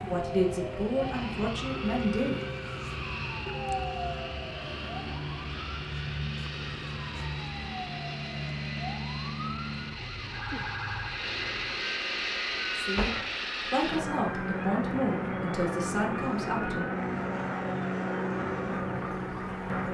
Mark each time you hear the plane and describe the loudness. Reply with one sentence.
The plane can be heard from 0.0 to 19.8 s, getting louder.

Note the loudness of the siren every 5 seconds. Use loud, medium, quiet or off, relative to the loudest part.
loud, loud, loud, medium.